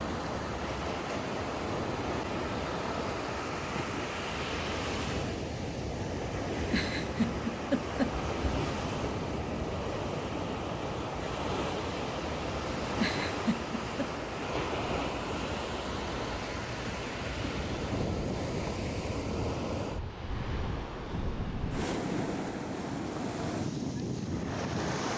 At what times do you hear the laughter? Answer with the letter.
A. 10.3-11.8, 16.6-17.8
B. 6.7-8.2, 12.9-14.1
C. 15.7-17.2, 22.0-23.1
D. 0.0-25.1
B.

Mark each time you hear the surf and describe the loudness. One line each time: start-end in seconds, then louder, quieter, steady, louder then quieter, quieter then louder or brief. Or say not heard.
0.0-25.1 steady.